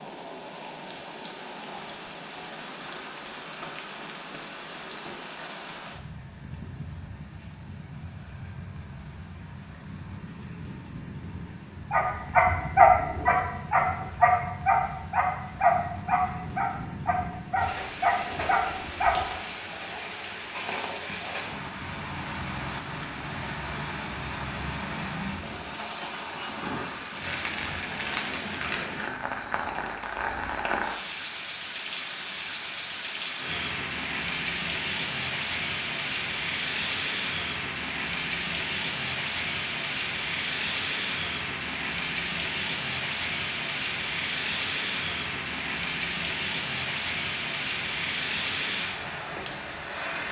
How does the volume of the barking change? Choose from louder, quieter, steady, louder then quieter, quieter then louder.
quieter.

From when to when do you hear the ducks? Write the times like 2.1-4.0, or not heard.
not heard.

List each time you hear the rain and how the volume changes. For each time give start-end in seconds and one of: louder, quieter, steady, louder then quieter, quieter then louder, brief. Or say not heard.
0.0-50.2 louder.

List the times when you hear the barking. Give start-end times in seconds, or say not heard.
11.9-19.2.